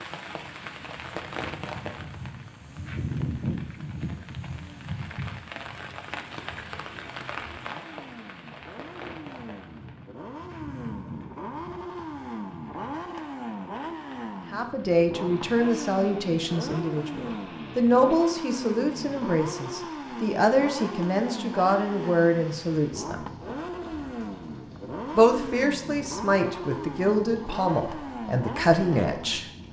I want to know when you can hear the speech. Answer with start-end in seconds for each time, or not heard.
14.5-23.2, 25.1-29.4.